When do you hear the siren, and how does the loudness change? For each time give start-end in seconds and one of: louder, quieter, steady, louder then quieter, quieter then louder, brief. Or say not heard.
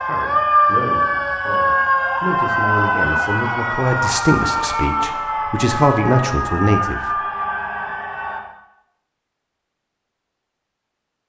0.0-8.4 quieter.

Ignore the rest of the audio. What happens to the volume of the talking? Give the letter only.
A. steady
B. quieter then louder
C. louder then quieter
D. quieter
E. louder
E.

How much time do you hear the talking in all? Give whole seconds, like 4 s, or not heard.
7 s.